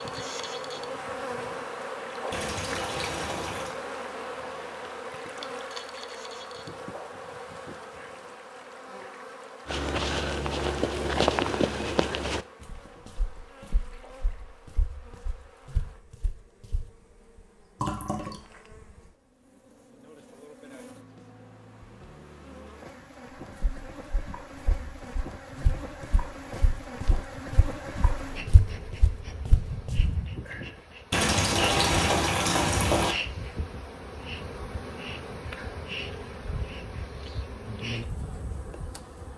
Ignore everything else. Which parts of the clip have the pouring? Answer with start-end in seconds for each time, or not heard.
2.3-3.8, 17.8-18.4, 31.1-33.1.